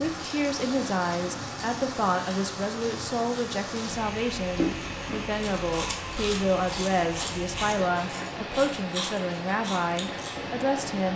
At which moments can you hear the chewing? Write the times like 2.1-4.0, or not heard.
4.5-10.4.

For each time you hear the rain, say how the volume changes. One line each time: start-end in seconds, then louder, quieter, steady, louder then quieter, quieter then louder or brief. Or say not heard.
0.0-11.1 steady.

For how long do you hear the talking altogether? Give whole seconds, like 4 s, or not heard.
11 s.